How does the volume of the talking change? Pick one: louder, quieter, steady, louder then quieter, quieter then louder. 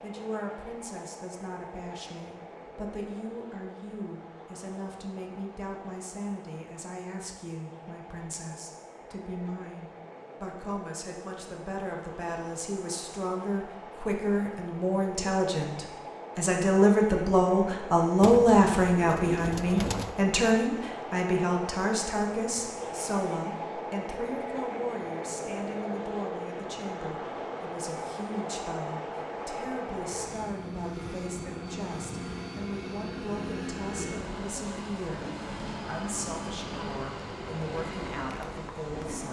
louder then quieter.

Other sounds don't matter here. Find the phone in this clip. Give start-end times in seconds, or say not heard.
not heard.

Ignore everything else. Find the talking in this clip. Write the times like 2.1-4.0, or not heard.
0.0-39.2.